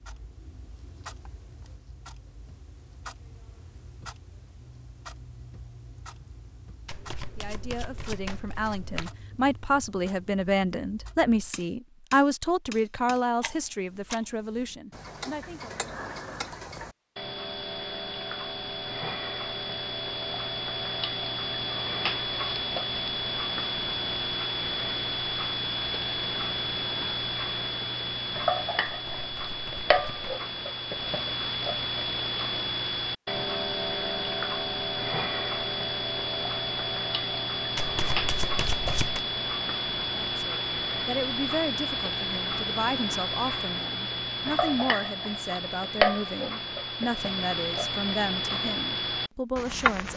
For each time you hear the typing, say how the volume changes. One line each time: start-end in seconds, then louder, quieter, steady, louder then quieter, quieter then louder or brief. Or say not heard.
not heard.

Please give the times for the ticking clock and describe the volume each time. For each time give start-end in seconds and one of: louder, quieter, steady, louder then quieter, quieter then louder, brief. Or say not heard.
0.0-50.1 louder.